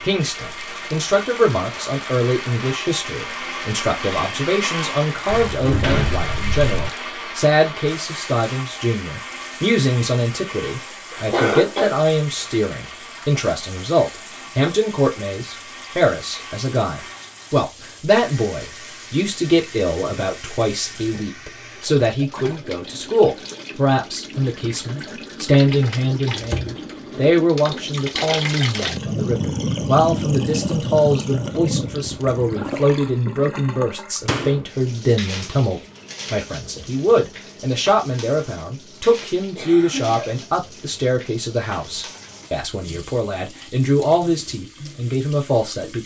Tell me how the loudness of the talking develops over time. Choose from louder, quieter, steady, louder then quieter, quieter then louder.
steady.